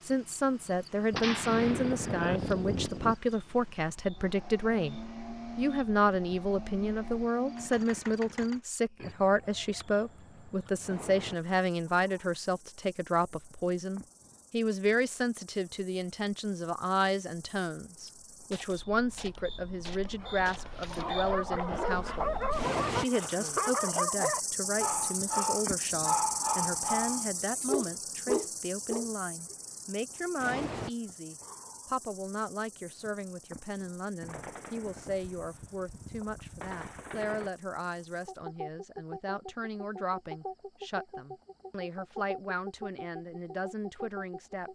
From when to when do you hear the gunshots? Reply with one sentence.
You can hear the gunshots from 1.1 to 3.1 s, from 18.1 to 20.8 s and from 34.2 to 37.5 s.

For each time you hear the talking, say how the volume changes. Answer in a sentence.
The talking can be heard from 0.1 to 44.7 s, getting quieter.